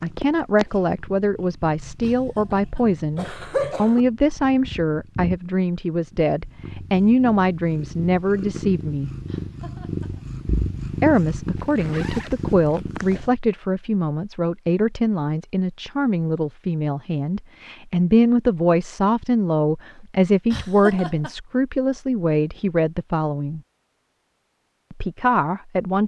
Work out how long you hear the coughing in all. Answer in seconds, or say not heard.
4 s.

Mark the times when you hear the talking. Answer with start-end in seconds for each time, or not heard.
0.0-9.1, 11.0-23.6, 24.9-26.0.